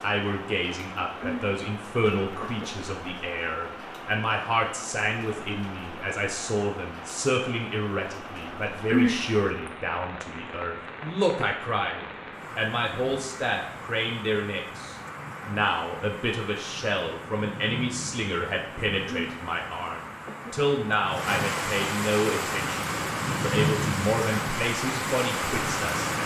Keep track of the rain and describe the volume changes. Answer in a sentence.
The loudness of the rain goes up.